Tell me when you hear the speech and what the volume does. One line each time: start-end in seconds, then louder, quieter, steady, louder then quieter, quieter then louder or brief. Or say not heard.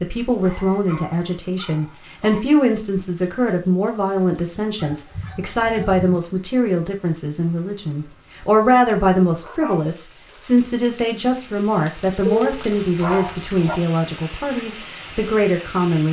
0.0-16.0 steady.